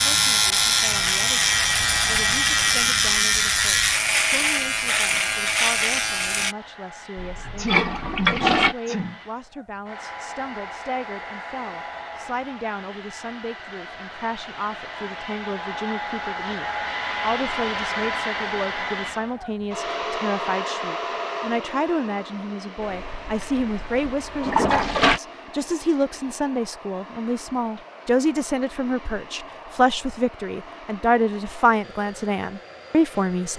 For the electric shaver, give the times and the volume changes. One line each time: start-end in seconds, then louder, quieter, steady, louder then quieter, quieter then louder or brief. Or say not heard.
0.0-6.5 steady.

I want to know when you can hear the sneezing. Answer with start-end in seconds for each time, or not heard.
7.4-9.2.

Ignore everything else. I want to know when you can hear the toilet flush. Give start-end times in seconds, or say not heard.
7.2-8.8, 22.8-25.2.